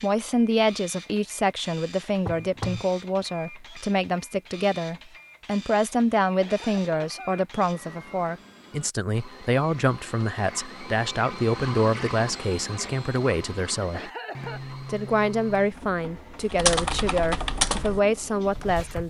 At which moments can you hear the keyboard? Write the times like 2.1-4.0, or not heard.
16.4-19.0.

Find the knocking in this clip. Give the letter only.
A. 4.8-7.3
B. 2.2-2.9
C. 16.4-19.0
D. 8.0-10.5
B.